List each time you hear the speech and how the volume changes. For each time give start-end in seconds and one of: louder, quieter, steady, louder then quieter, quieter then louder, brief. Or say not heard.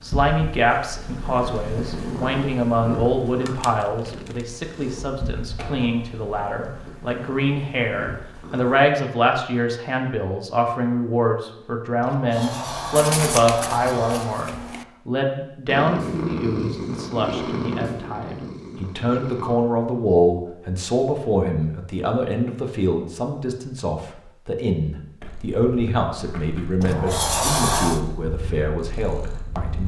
0.0-29.8 steady.